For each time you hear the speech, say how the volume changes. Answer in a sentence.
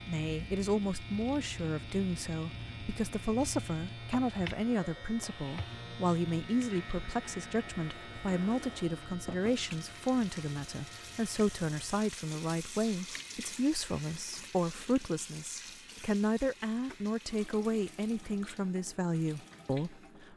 The speech can be heard from 0.1 to 20.3 s, at a steady volume.